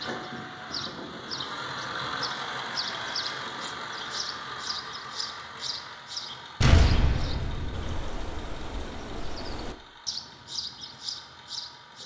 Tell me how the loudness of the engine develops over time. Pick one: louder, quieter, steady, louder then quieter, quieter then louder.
quieter.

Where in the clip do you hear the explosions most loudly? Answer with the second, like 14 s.
7 s.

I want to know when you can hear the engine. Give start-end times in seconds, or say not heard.
0.0-12.0.